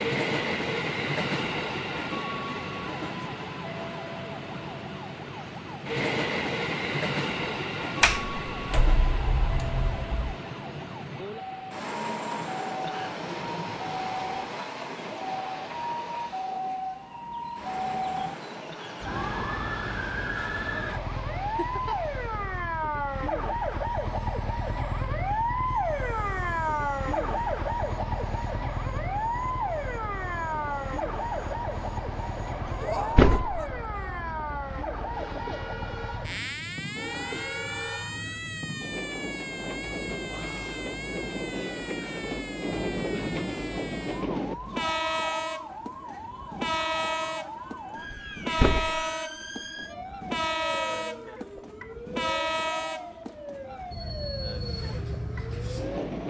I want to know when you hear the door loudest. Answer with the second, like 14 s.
33 s.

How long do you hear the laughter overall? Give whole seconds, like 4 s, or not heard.
2 s.